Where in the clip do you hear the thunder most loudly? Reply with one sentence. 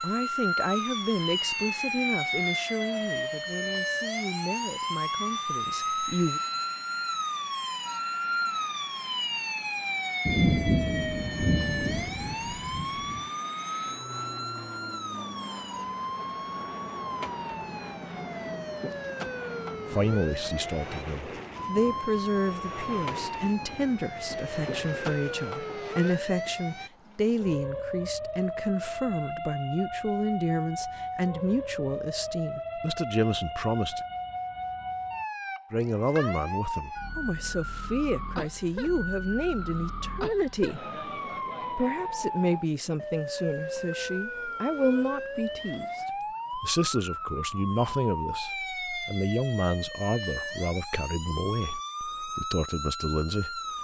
The loudest moment of the thunder is at 11 seconds.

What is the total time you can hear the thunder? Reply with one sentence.
The thunder can be heard for 3 seconds in total.